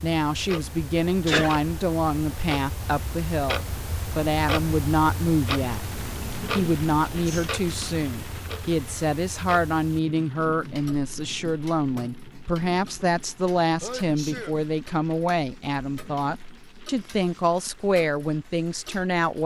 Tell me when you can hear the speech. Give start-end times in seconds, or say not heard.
0.0-5.8, 6.5-19.4.